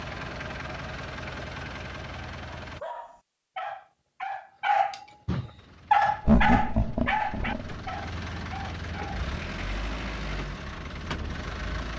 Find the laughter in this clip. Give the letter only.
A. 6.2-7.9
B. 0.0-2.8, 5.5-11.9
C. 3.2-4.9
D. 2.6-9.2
A.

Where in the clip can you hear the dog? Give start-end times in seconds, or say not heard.
2.6-9.2.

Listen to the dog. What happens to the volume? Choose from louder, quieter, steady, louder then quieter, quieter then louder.
louder then quieter.